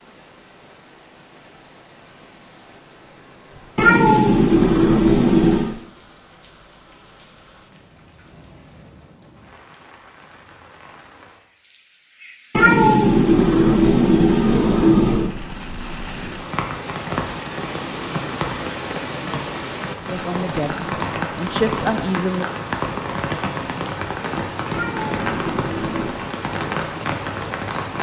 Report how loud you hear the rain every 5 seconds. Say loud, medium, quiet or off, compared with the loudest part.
quiet, quiet, quiet, loud, loud, loud.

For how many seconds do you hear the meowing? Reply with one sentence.
You can hear the meowing for 6 seconds altogether.